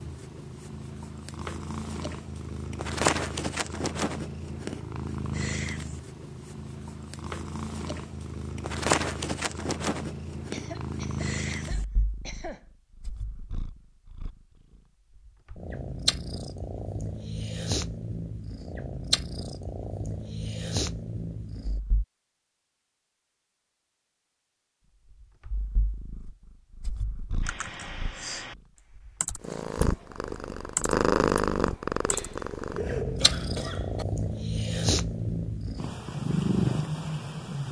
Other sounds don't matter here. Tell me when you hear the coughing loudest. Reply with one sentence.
The loudest moment of the coughing is at 33 seconds.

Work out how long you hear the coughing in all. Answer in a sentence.
The coughing can be heard for 4 seconds in total.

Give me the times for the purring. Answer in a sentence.
The purring can be heard from 0.0 to 22.1 s and from 25.1 to 37.6 s.